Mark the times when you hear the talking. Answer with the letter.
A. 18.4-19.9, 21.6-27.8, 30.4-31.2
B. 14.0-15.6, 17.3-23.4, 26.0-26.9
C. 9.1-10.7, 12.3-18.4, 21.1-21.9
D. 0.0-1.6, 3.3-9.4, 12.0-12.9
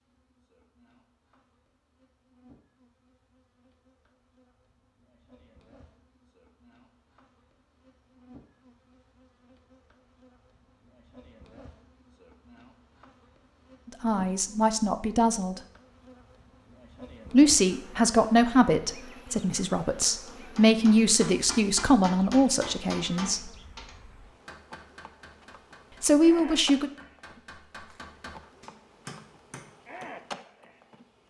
B.